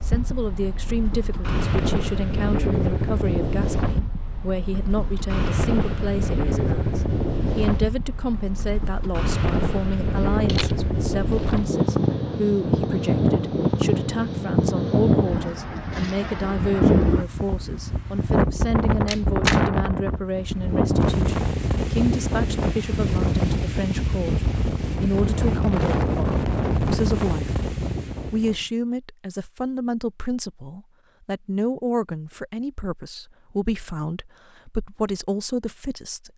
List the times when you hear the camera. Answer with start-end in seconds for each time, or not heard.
10.4-11.6, 19.1-19.6.